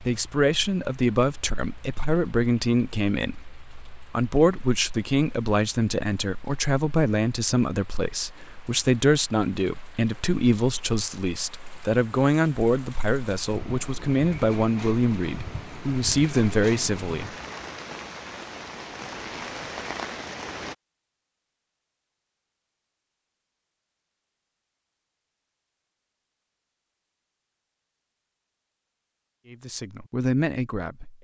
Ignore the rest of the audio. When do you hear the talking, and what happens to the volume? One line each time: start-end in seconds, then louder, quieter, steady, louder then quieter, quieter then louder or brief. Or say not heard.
0.0-17.3 steady
29.4-31.1 brief.